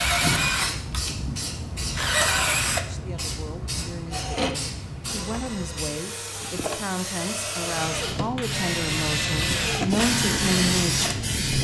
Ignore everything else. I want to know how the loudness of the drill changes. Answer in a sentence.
The loudness of the drill goes down, then up.